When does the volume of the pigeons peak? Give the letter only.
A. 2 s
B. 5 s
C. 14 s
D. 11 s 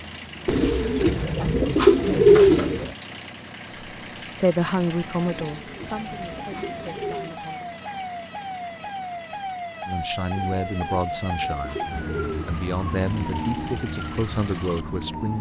A.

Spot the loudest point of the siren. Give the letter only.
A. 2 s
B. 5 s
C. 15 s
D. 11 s
D.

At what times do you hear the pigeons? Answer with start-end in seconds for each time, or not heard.
0.5-2.9, 5.2-7.3, 10.3-12.6.